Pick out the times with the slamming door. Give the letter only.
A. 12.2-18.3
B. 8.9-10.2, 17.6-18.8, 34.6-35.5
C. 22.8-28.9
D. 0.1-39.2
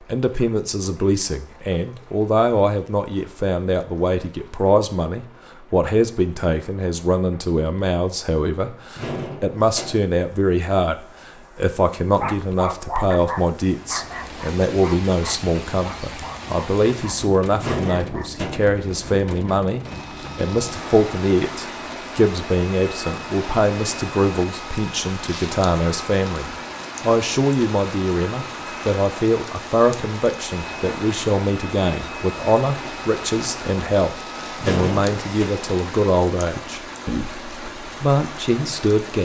B.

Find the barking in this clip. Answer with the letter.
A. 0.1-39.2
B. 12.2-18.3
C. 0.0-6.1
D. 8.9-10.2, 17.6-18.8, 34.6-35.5
B.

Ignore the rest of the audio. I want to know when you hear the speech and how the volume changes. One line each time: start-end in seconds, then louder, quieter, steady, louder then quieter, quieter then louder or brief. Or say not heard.
0.1-39.2 steady.